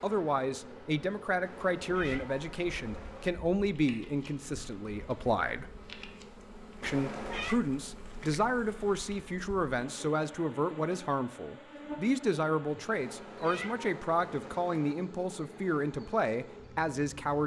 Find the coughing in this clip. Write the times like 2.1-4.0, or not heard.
not heard.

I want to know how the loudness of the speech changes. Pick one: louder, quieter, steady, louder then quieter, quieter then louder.
steady.